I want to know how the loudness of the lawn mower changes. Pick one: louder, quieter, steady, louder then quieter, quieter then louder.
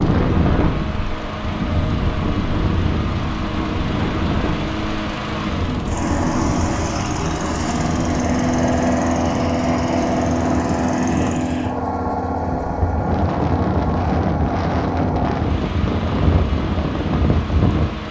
louder then quieter.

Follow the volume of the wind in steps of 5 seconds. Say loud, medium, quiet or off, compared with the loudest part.
loud, medium, loud, loud.